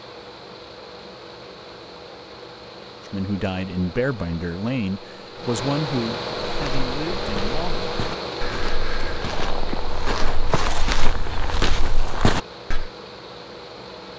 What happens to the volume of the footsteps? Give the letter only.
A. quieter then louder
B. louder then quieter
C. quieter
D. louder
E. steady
D.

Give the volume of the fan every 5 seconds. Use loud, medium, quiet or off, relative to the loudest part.
medium, loud, medium.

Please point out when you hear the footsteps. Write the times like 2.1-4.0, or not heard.
6.5-12.9.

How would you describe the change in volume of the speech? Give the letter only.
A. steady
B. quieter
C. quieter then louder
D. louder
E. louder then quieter
B.